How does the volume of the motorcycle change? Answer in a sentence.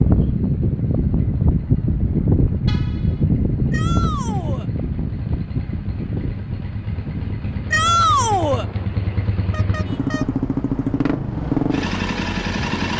The loudness of the motorcycle goes up.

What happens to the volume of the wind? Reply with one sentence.
The volume of the wind goes down.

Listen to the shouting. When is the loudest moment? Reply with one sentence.
The volume of the shouting peaks at 8 seconds.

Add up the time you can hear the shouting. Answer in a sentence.
The shouting can be heard for 2 seconds in total.